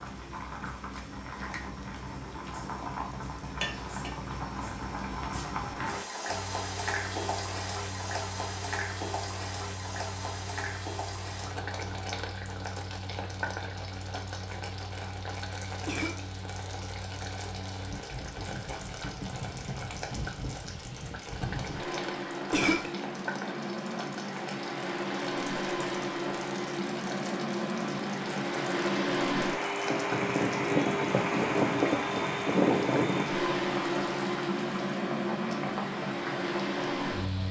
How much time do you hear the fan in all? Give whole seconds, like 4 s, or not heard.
31 s.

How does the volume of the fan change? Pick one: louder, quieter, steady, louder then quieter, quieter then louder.
louder.